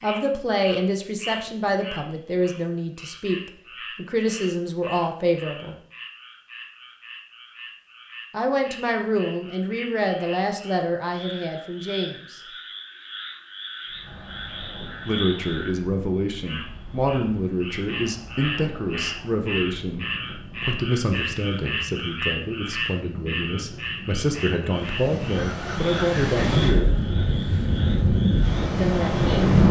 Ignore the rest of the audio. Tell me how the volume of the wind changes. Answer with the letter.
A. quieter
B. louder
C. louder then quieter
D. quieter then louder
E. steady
B.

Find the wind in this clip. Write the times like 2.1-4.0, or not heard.
13.8-29.6.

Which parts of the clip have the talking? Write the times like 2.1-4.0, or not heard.
0.0-5.8, 8.3-12.4, 15.1-26.9, 28.8-29.5.